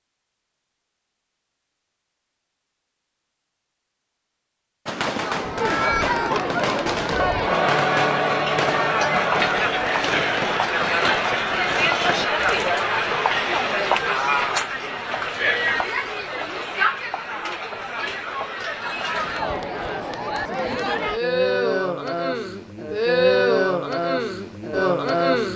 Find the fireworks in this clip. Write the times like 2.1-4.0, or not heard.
4.8-12.7.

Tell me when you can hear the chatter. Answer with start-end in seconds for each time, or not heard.
5.0-25.5.